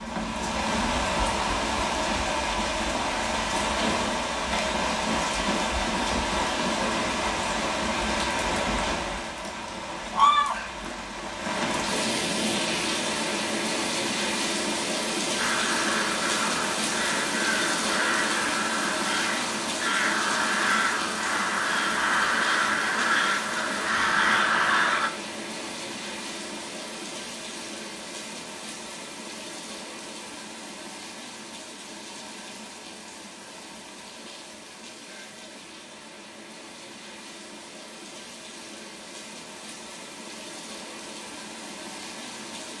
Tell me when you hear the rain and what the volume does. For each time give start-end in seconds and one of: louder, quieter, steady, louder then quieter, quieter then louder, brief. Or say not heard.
0.0-42.7 quieter.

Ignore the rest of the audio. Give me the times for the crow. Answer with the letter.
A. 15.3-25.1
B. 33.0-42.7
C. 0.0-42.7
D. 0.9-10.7
A.